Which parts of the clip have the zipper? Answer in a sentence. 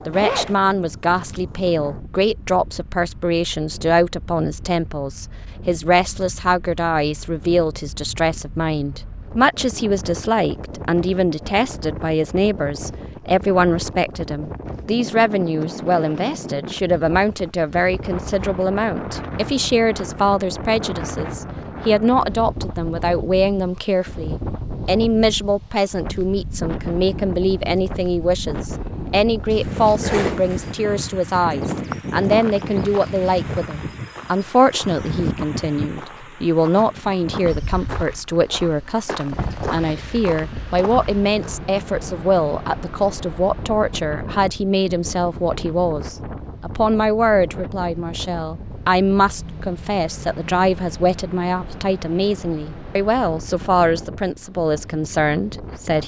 You can hear the zipper from 0.1 to 0.6 s and from 29.5 to 30.8 s.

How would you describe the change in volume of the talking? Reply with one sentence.
The loudness of the talking stays about the same.